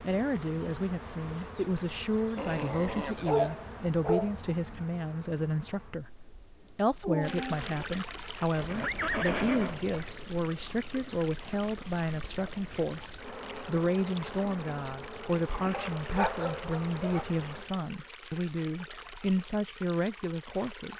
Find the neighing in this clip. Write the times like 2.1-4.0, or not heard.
8.6-10.2.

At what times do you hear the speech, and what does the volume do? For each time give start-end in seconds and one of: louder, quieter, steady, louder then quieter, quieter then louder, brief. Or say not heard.
0.0-20.9 steady.